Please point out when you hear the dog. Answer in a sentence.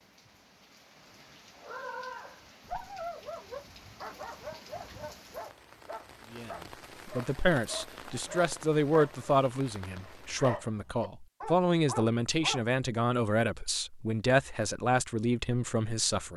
You can hear the dog from 1.6 to 12.7 s.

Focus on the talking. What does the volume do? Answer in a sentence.
The volume of the talking stays about the same.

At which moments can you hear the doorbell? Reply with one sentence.
The doorbell can't be heard in this clip.